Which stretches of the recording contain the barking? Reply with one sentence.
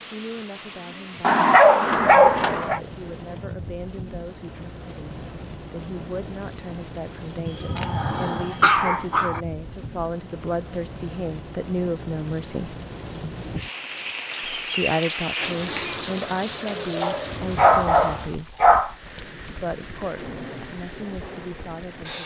The barking can be heard from 1.2 to 2.8 s, from 7.5 to 9.4 s and from 17.0 to 18.9 s.